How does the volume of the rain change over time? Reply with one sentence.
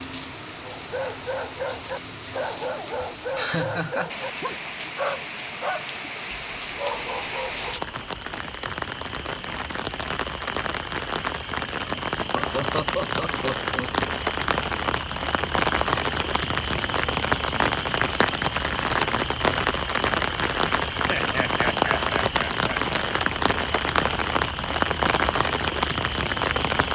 The volume of the rain goes up.